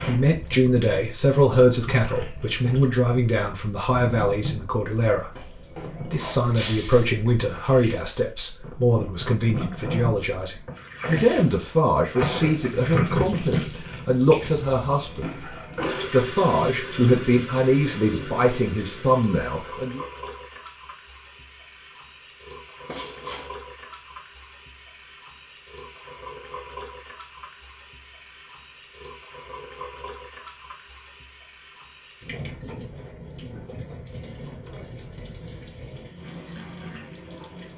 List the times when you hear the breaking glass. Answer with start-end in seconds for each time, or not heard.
6.5-7.1, 22.9-23.5.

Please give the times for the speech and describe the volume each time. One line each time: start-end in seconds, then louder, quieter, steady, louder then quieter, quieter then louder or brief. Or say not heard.
0.1-20.0 steady.